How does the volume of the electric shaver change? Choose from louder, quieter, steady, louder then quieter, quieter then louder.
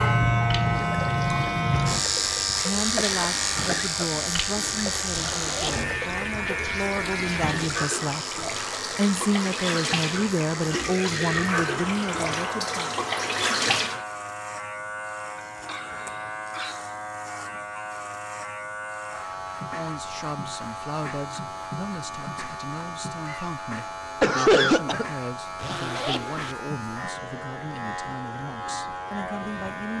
quieter.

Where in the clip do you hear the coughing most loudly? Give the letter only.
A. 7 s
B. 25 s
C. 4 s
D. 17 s
B.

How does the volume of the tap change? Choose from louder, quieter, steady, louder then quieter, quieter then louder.
louder.